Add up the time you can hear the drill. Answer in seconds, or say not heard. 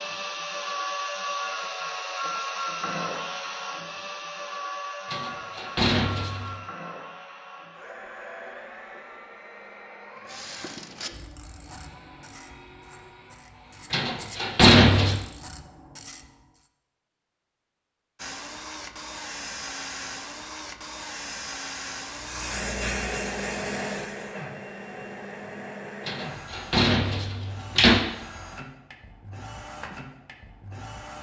27 s.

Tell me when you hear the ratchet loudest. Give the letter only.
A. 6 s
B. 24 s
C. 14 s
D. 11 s
D.